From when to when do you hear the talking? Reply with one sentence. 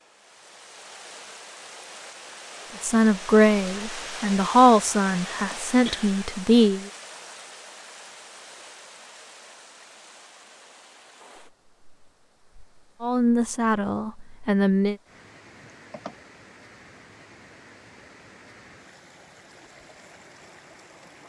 The talking can be heard from 2.8 to 6.9 s and from 13.0 to 14.9 s.